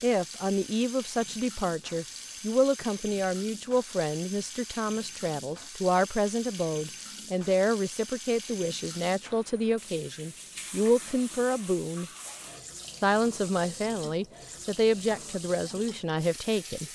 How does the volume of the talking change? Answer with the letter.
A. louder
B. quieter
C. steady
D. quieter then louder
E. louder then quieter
C.